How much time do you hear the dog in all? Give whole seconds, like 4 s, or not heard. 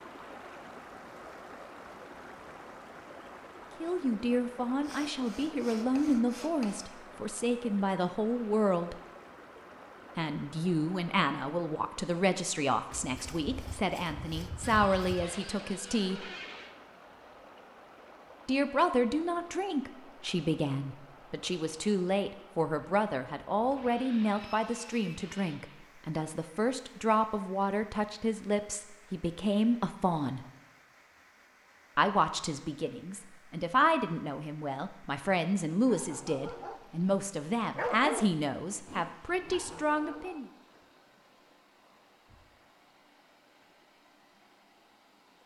3 s.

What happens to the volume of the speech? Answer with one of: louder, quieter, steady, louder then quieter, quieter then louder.
steady.